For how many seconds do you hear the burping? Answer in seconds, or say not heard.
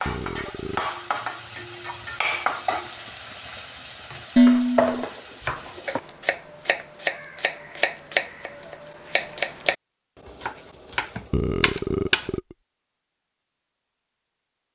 2 s.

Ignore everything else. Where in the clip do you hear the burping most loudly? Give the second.
12 s.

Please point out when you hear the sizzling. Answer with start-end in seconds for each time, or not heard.
0.0-6.0.